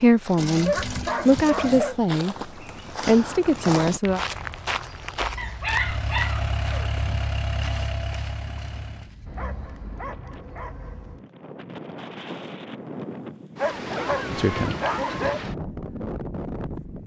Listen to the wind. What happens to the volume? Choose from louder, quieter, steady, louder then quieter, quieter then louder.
louder.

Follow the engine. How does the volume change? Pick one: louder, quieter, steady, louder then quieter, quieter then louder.
quieter.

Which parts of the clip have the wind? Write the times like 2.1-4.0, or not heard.
8.2-17.0.